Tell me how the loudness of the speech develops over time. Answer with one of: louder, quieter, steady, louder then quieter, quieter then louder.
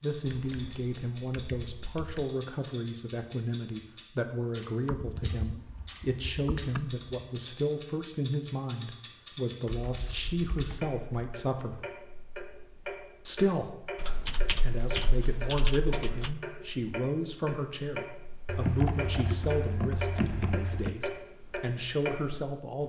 steady.